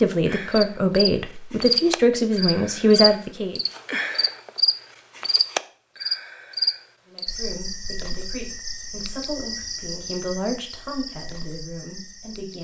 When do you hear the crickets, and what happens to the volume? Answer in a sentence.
You can hear the crickets from 0.1 to 12.5 s, getting quieter.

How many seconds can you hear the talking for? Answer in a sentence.
You can hear the talking for 9 seconds altogether.